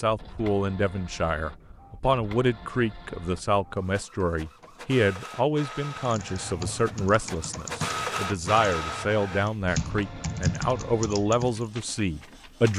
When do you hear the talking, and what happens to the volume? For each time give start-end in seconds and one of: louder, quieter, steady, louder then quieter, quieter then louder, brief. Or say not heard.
0.0-12.7 steady.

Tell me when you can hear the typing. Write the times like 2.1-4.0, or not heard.
6.0-11.7.